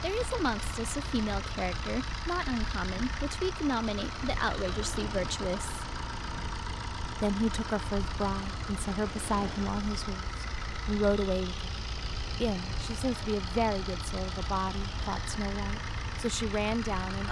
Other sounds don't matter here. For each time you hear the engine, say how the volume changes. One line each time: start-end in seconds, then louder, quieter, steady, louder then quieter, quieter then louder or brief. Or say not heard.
0.0-17.2 steady.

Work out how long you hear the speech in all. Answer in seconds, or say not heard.
15 s.